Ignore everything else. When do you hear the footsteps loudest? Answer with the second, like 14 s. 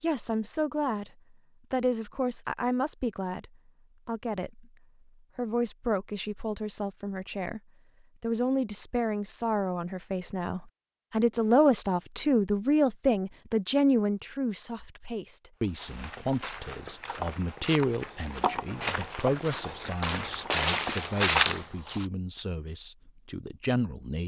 21 s.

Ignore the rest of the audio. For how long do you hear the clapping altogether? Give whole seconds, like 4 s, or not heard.
not heard.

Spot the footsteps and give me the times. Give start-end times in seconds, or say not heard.
15.6-22.1.